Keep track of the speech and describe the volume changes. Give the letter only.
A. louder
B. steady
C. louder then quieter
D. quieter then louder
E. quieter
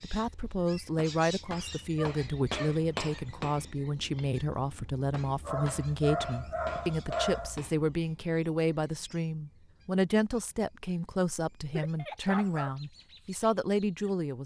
B.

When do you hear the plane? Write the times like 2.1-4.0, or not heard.
not heard.